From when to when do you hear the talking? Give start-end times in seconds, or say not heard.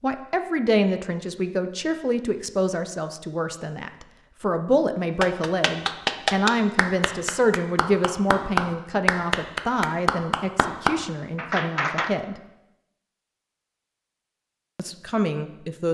0.0-12.4, 14.8-15.8.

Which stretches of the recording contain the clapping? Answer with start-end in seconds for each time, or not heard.
5.2-12.1.